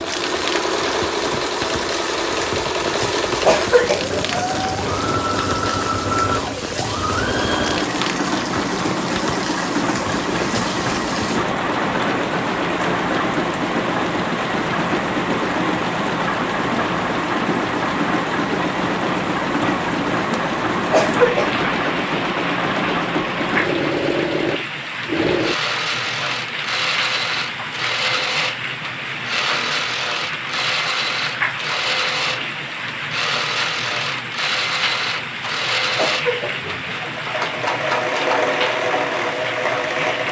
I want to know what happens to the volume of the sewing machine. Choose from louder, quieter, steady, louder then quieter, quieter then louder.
steady.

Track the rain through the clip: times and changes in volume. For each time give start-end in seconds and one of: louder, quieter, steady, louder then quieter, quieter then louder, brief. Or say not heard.
0.0-40.2 steady.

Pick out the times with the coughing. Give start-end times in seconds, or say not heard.
3.5-4.6, 20.9-21.6, 36.0-37.0.